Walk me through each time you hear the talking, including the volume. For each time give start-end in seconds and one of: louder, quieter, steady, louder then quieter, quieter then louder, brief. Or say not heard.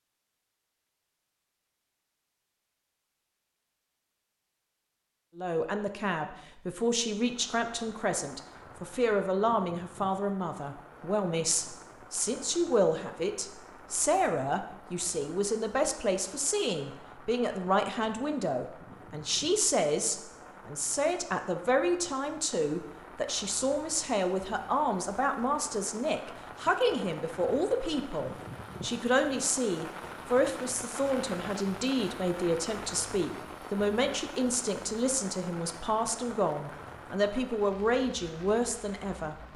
5.3-39.5 steady.